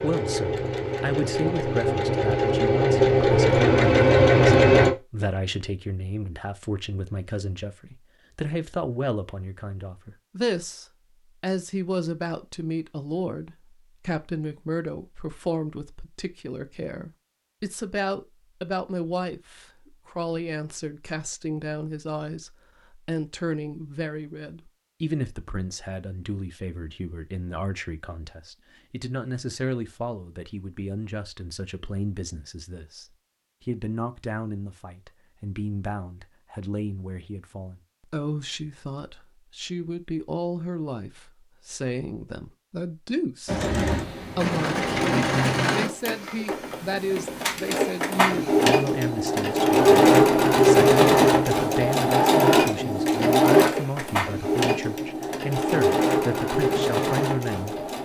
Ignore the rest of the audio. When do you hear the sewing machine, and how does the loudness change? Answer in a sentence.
You can hear the sewing machine from 0.0 to 4.9 s, getting louder; and from 43.5 to 57.9 s, getting louder then quieter.